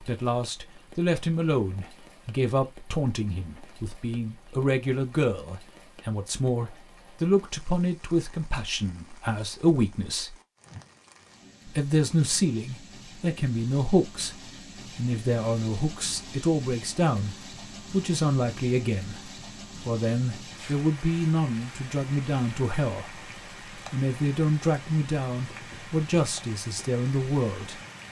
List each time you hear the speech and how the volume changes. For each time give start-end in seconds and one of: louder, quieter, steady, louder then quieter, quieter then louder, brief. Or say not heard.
0.0-10.3 steady
11.7-27.8 steady.